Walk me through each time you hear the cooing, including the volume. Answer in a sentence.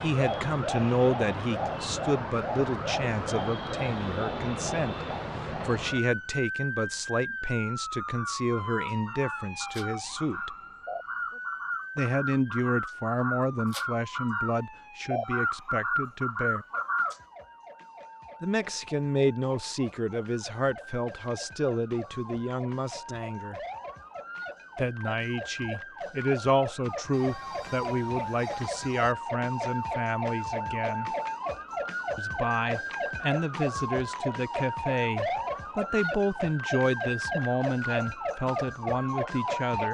You can hear the cooing from 8.0 to 17.1 s, getting louder.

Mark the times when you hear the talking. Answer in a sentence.
You can hear the talking from 0.0 to 10.5 s, from 11.9 to 16.6 s, from 18.4 to 23.6 s, from 24.8 to 31.1 s and from 32.1 to 39.8 s.